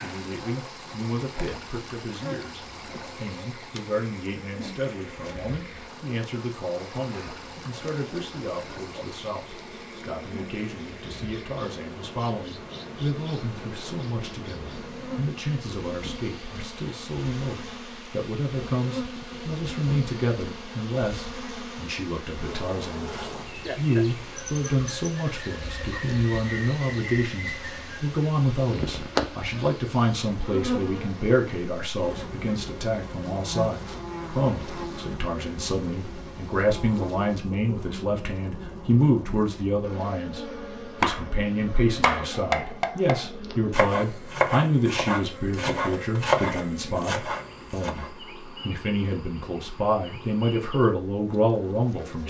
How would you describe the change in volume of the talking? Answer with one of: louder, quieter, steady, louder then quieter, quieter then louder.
louder.